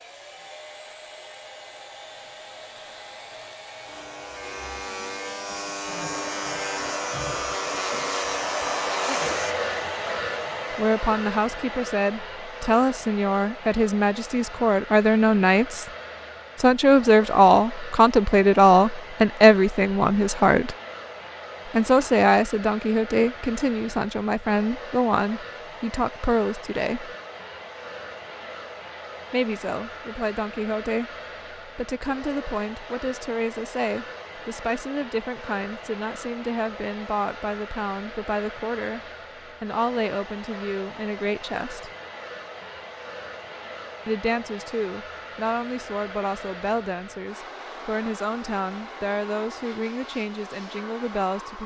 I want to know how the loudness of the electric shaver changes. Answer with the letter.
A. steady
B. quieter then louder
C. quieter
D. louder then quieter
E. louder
E.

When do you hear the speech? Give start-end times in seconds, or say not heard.
10.7-15.8, 16.6-20.8, 21.6-27.1, 29.3-39.0, 39.6-41.9, 44.0-51.6.